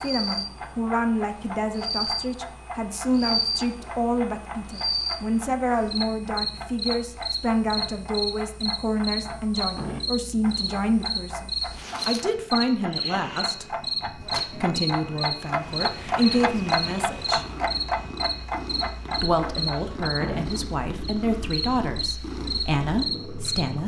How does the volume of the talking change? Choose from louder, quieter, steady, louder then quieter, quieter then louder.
steady.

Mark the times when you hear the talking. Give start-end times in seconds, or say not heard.
0.0-17.4, 19.1-23.8.